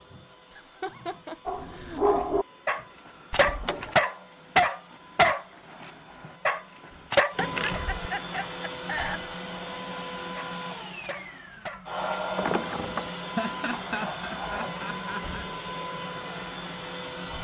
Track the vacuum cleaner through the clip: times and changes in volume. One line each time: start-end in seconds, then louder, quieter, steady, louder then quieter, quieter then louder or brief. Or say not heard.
0.0-17.3 louder.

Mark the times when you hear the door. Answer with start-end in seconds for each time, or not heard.
3.3-4.0, 7.3-8.0, 12.3-13.1.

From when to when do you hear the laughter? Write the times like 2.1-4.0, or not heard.
0.5-2.2, 7.3-9.2, 13.2-15.4.